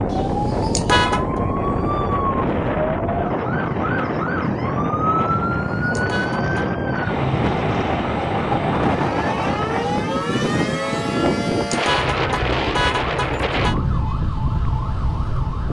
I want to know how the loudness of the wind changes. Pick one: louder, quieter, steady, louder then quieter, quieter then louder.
steady.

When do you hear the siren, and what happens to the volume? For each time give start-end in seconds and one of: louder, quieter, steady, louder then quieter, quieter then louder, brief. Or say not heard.
0.0-15.6 steady.